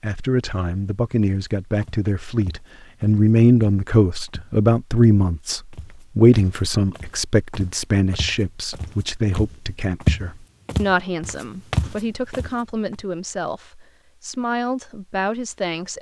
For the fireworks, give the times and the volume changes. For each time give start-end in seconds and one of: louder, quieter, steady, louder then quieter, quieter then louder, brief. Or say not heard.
not heard.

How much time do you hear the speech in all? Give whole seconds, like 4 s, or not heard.
16 s.